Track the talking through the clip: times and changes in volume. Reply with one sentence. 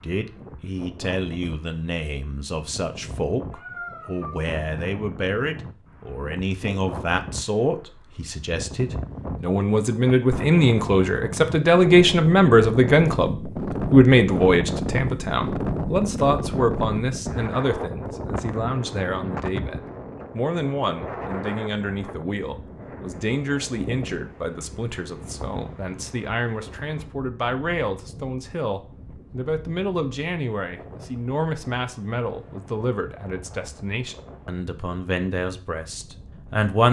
You can hear the talking from 0.0 to 36.8 s, getting louder then quieter.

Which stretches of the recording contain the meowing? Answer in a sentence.
You can hear the meowing from 3.5 to 4.5 s.